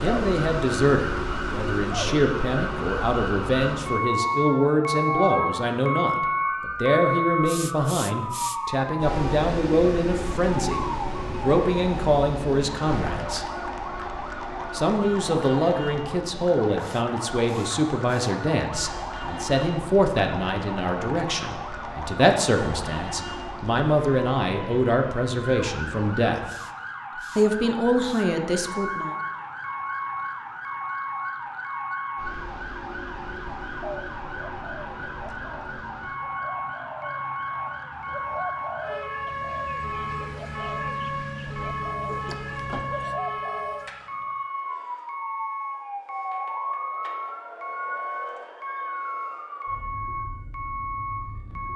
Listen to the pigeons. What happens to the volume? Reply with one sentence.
The volume of the pigeons goes up.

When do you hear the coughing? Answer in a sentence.
You can hear the coughing from 42.0 to 43.1 s.